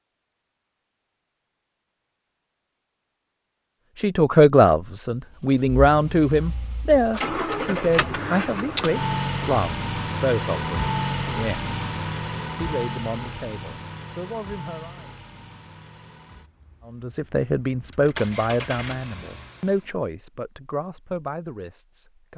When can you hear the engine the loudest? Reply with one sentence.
The volume of the engine peaks at 9 seconds.